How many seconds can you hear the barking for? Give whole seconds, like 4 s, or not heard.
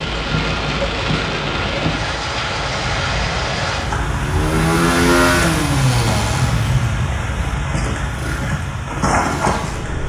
not heard.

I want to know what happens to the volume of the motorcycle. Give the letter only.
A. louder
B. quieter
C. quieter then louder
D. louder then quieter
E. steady
B.